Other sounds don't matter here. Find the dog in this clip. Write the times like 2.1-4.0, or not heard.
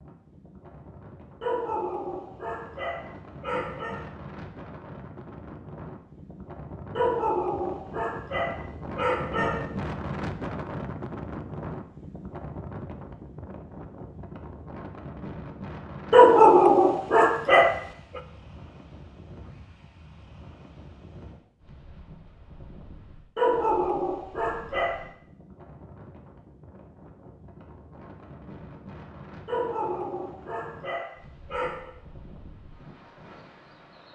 1.4-4.0, 7.0-9.7, 16.1-18.2, 23.4-25.0, 29.4-31.9.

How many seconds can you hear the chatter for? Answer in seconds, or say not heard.
not heard.